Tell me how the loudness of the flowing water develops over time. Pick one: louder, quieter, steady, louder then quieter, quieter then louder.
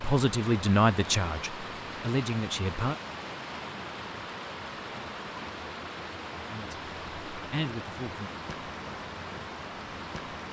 steady.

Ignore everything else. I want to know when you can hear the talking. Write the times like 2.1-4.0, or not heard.
0.0-3.0, 6.5-8.3.